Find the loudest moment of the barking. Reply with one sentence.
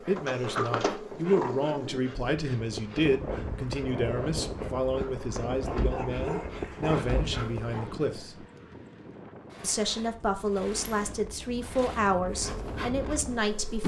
The volume of the barking peaks at 6 seconds.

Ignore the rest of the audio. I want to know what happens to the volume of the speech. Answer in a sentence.
The volume of the speech stays about the same.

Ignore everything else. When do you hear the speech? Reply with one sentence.
The speech can be heard from 0.1 to 8.4 s and from 9.6 to 13.8 s.